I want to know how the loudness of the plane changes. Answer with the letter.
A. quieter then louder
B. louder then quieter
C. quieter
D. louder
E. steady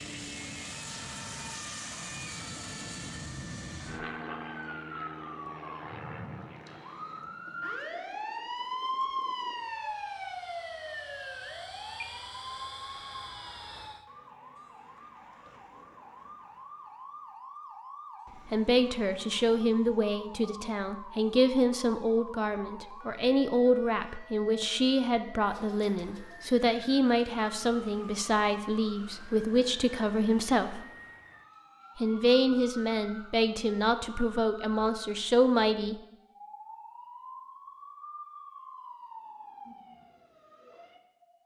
A.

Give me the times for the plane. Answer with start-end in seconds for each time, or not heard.
0.0-14.1.